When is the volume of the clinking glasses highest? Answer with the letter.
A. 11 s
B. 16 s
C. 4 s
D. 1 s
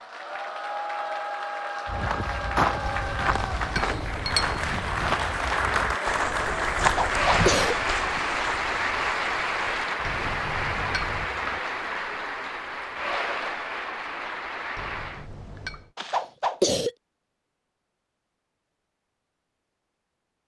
C.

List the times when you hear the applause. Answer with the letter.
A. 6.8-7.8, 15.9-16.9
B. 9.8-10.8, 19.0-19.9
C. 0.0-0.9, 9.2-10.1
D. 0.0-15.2
D.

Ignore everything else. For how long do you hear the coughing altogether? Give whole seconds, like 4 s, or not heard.
2 s.